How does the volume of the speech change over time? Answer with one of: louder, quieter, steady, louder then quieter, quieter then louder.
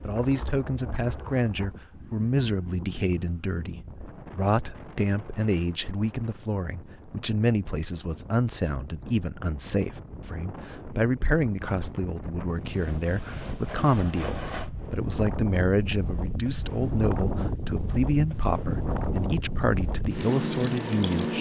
steady.